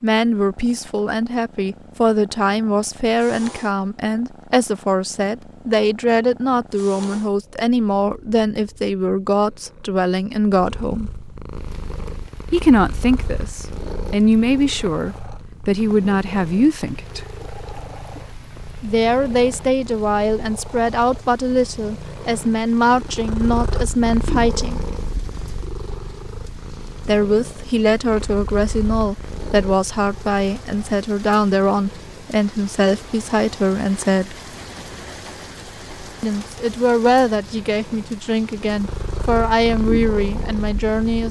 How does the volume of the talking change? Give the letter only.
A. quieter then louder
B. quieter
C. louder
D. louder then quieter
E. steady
E.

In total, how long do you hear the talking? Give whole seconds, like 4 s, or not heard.
34 s.